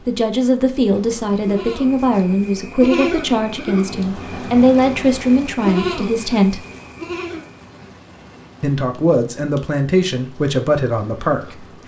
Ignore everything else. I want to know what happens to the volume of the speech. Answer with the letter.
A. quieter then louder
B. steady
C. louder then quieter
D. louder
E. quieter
B.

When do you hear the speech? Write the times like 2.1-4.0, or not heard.
0.1-6.7, 8.6-11.7.